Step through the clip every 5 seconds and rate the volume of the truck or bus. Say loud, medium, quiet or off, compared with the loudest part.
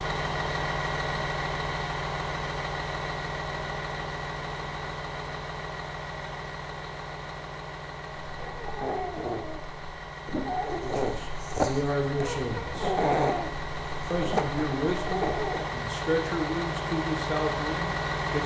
loud, medium, medium, loud.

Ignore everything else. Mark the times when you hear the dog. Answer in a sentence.
The dog can be heard from 8.2 to 15.7 s.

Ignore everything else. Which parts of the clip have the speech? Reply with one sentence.
You can hear the speech from 10.7 to 12.9 s and from 14.1 to 18.4 s.